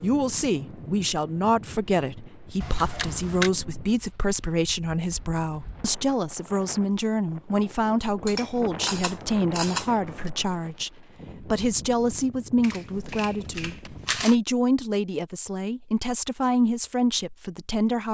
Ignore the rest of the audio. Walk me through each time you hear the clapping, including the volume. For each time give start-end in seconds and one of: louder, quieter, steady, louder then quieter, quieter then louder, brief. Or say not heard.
not heard.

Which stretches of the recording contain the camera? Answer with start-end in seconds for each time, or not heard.
2.6-3.5, 8.2-10.3, 12.6-14.3.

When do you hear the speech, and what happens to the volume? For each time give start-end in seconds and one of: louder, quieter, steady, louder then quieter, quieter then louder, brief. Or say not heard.
0.0-18.0 steady.